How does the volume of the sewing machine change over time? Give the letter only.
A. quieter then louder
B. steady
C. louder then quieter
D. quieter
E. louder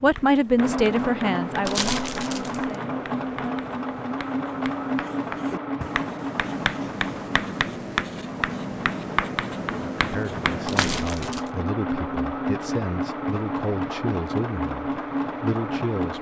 A.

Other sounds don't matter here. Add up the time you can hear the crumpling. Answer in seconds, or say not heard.
2 s.